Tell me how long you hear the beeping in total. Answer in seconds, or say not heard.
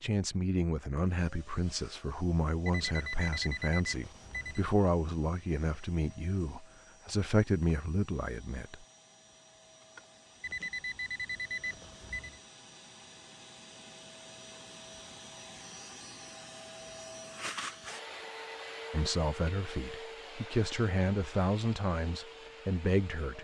5 s.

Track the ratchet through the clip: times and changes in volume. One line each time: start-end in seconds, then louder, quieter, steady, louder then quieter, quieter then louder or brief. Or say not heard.
not heard.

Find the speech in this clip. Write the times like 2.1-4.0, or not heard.
0.0-8.8, 18.9-23.3.